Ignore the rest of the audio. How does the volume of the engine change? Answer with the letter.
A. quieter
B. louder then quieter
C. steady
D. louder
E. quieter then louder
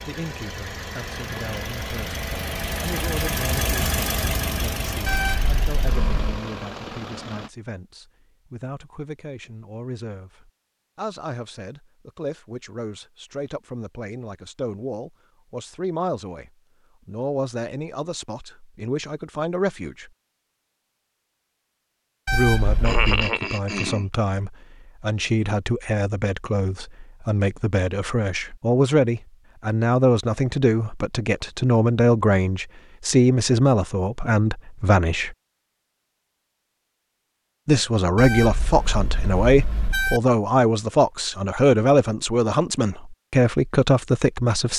B.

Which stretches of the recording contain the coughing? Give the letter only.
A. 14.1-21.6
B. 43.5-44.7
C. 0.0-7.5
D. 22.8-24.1
D.